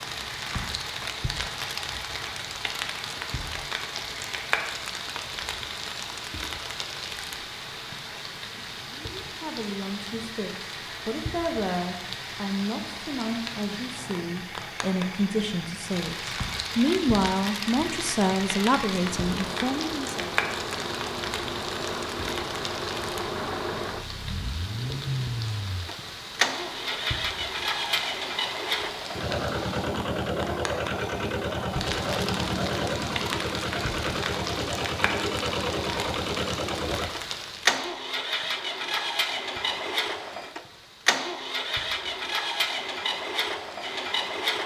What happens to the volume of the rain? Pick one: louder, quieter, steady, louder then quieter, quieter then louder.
quieter.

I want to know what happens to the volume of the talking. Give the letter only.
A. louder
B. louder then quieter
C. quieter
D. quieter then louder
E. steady
A.